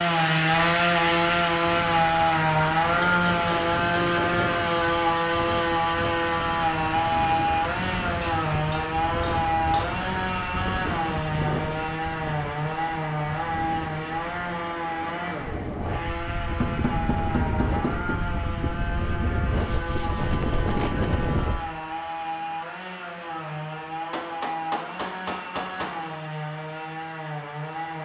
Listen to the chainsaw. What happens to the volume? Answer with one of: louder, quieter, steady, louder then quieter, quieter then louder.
quieter.